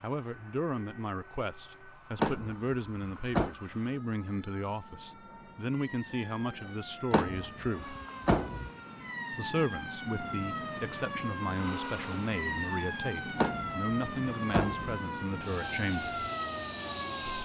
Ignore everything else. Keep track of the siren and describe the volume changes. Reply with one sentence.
The loudness of the siren goes up.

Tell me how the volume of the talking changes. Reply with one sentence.
The volume of the talking stays about the same.